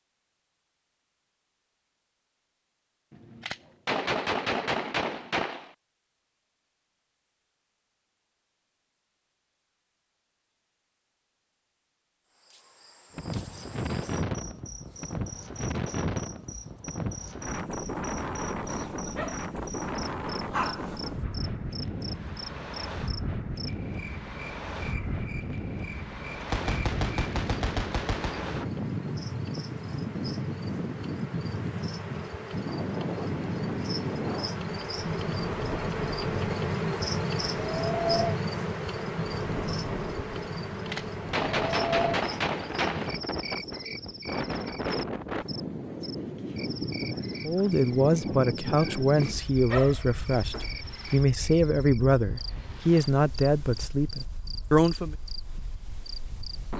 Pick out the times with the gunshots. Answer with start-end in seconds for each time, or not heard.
3.1-5.7, 26.4-28.6, 40.7-43.2.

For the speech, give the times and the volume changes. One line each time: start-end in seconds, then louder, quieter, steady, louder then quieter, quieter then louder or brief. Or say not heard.
47.5-55.1 steady.